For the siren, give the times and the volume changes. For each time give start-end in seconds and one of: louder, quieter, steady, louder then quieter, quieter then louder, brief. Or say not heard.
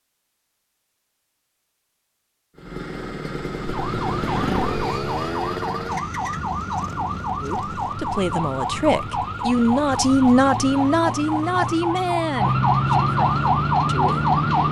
3.6-14.6 louder.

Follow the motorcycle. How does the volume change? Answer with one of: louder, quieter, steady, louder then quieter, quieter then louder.
quieter.